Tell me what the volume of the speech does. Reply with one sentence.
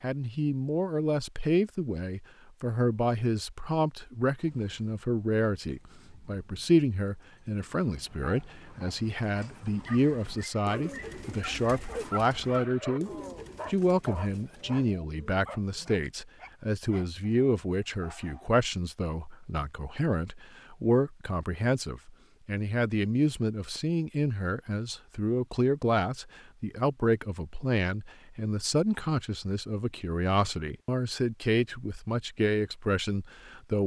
The loudness of the speech stays about the same.